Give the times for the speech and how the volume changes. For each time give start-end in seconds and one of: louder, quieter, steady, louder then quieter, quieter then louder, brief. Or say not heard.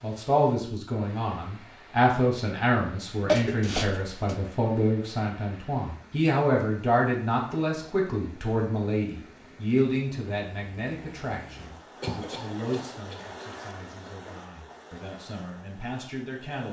0.0-16.6 quieter.